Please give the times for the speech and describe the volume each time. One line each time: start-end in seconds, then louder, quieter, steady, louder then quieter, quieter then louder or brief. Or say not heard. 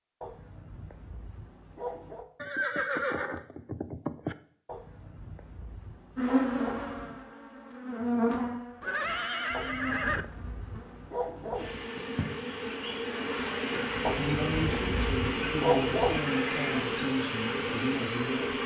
14.2-18.6 steady.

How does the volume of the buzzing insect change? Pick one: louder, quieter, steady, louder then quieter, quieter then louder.
quieter then louder.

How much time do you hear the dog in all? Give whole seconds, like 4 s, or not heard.
9 s.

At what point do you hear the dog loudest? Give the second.
16 s.